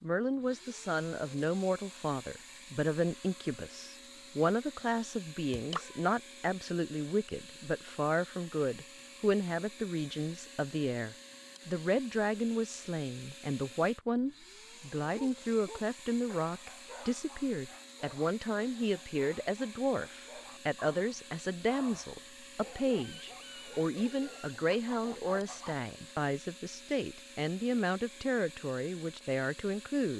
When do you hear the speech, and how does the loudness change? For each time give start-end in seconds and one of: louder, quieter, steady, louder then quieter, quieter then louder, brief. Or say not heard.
0.0-30.1 steady.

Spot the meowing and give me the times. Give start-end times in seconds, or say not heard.
5.5-6.0.